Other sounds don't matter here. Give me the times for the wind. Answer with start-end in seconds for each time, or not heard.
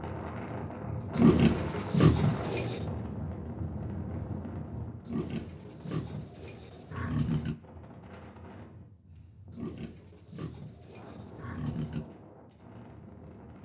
0.0-13.6.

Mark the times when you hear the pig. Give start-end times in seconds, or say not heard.
1.1-2.9, 5.0-7.5, 9.5-12.1.